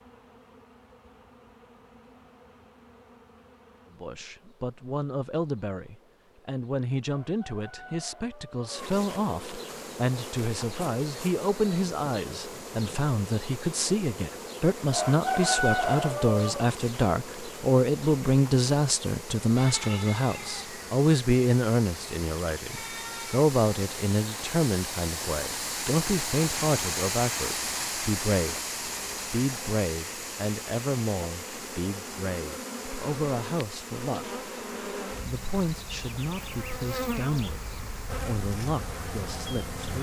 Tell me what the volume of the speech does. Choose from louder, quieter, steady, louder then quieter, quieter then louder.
louder then quieter.